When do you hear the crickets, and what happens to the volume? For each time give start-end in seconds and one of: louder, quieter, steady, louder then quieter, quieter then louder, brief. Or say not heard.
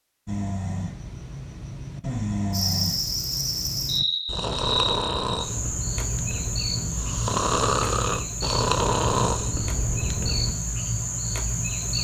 2.5-11.9 steady.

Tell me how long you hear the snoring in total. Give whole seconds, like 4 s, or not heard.
10 s.